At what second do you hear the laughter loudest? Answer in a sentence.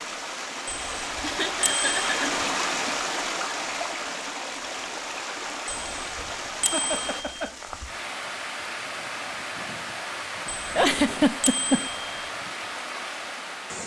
The loudest moment of the laughter is at 11 seconds.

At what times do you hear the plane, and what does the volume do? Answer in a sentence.
You can't hear the plane here.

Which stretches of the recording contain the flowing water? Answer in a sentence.
You can hear the flowing water from 0.0 to 13.8 s.